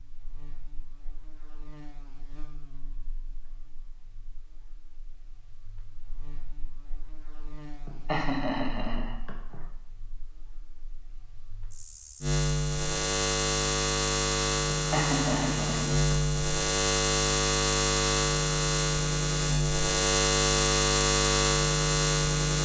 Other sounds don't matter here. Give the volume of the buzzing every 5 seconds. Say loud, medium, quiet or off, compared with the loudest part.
quiet, quiet, medium, loud, loud.